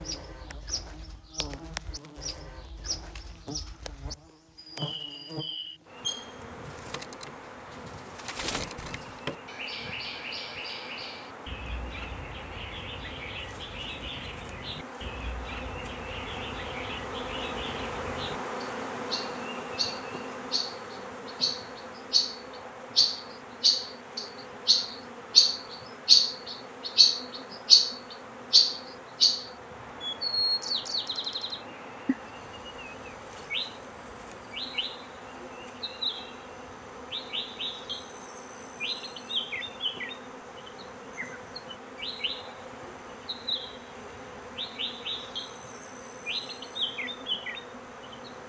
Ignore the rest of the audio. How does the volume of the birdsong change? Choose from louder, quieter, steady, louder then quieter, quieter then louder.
louder then quieter.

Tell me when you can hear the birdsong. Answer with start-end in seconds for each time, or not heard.
0.0-48.4.